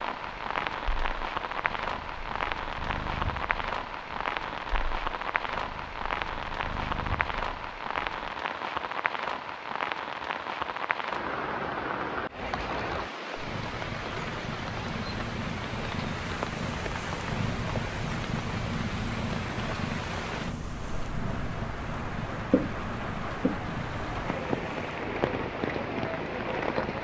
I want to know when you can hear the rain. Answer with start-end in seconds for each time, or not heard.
0.0-27.0.